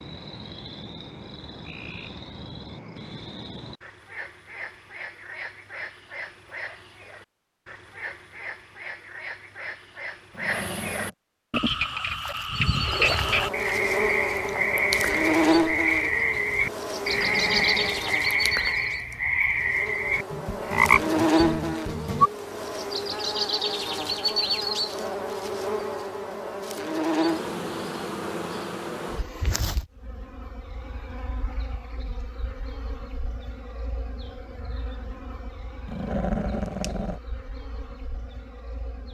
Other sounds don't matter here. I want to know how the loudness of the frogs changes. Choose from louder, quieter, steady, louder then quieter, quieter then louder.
louder.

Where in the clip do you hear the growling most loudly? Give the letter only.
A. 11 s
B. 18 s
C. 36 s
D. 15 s
C.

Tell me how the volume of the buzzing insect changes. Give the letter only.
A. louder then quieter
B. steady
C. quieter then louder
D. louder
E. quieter
E.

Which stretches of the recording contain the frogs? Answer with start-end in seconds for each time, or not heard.
0.0-22.3.